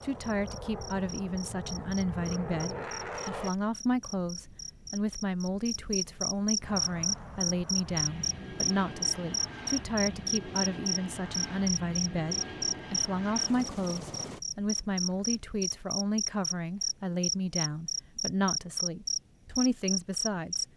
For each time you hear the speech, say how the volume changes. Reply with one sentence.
You can hear the speech from 0.0 to 20.6 s, at a steady volume.